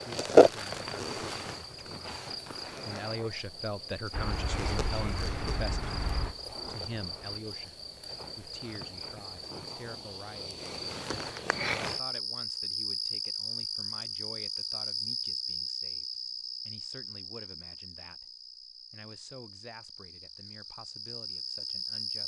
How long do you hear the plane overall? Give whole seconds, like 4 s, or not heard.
3 s.